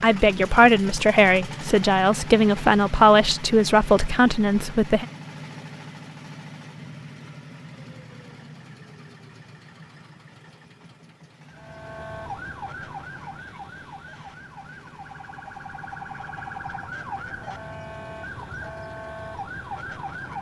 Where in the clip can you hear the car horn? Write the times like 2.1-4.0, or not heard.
not heard.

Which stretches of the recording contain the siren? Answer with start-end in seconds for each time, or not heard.
11.5-20.3.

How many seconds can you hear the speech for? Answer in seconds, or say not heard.
5 s.